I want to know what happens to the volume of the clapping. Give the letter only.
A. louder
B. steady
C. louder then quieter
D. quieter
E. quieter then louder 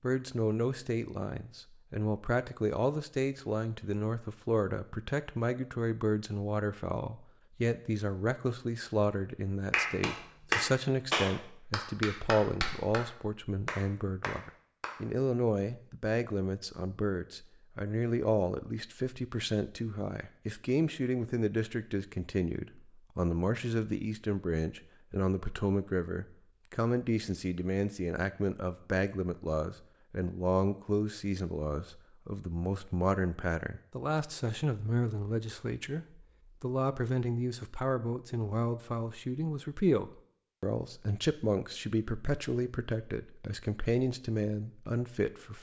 D.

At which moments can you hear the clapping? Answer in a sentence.
The clapping can be heard from 9.7 to 15.0 s.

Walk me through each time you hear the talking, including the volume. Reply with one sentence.
You can hear the talking from 0.0 to 45.5 s, at a steady volume.